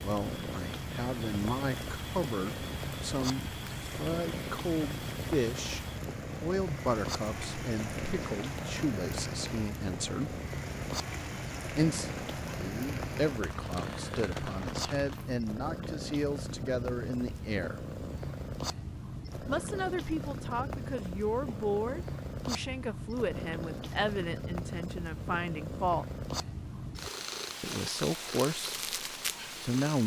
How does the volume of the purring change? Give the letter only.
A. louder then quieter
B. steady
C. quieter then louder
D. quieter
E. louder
B.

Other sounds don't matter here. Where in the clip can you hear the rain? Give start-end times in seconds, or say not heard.
0.0-15.4.